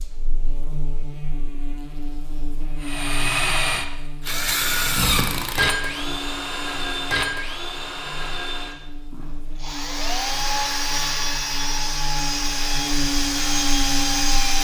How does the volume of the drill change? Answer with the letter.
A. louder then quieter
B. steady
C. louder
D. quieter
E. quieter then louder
E.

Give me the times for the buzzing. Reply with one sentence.
You can hear the buzzing from 0.0 to 14.5 s.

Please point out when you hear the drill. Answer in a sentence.
The drill can be heard from 2.8 to 14.5 s.